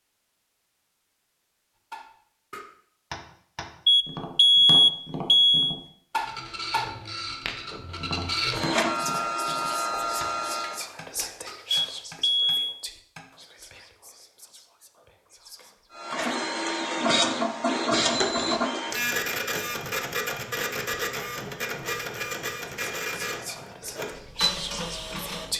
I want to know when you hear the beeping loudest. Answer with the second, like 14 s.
5 s.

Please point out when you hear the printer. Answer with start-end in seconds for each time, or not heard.
6.2-10.8, 15.9-25.5.